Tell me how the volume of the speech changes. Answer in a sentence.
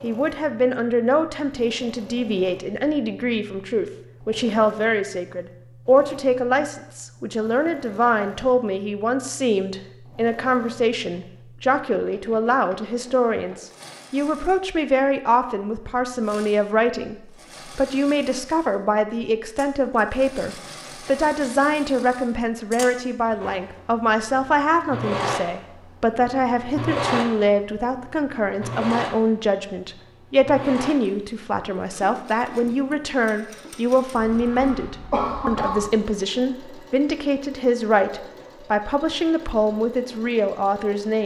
The loudness of the speech stays about the same.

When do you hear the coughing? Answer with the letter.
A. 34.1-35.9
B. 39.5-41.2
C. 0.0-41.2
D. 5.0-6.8
A.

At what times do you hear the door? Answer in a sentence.
You can't hear the door here.